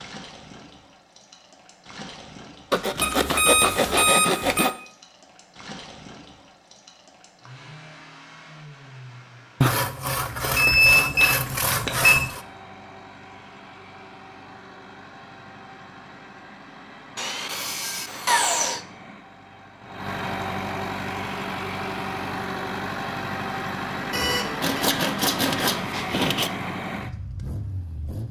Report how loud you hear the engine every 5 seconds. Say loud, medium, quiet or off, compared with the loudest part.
quiet, quiet, quiet, quiet, loud, loud.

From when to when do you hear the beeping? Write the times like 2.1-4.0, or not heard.
3.0-4.7, 10.6-12.3, 24.1-24.8.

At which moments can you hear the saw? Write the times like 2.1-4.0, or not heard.
2.7-4.7, 9.6-12.4, 17.1-18.9, 24.6-26.5.